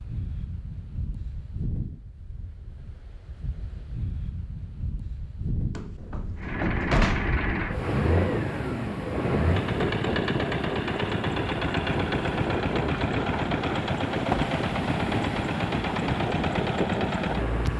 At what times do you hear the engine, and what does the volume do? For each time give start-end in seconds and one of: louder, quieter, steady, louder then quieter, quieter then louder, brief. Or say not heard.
6.3-17.7 steady.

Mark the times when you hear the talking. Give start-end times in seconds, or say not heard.
not heard.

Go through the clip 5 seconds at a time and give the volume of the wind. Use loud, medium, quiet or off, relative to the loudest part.
medium, loud, loud, loud.